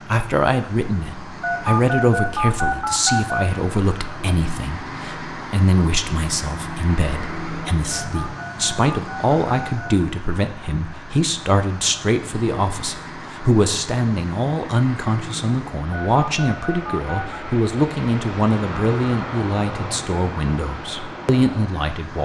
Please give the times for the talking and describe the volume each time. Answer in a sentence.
The talking can be heard from 0.1 to 22.2 s, at a steady volume.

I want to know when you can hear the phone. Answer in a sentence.
The phone can be heard from 1.4 to 3.5 s, from 7.9 to 9.9 s and from 15.9 to 17.4 s.